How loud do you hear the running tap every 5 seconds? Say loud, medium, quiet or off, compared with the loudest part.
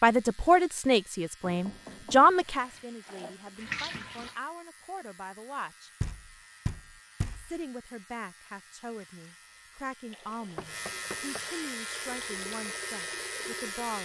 loud, off, medium.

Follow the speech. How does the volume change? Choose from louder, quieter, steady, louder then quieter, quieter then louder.
quieter.